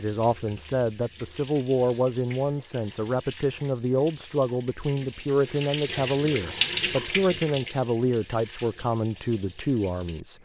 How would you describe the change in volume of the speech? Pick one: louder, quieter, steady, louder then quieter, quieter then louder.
steady.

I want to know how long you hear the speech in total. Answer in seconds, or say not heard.
10 s.